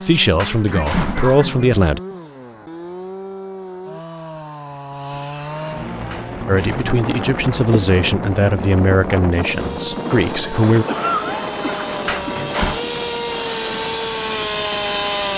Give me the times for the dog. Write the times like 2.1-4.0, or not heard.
not heard.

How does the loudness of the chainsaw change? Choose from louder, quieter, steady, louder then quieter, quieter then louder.
louder.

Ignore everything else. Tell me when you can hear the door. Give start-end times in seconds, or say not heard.
0.3-1.5, 6.1-7.0, 12.1-12.8.